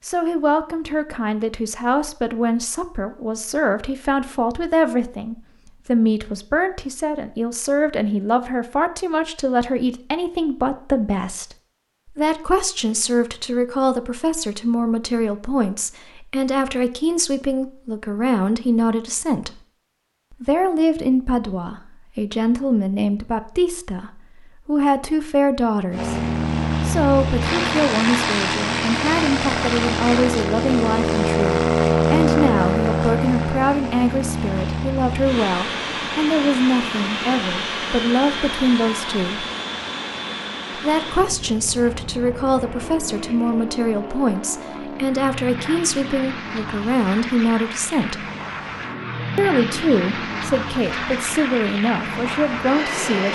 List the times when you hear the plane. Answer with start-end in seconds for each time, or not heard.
25.9-53.3.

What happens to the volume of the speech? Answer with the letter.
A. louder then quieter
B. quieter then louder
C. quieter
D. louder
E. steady
E.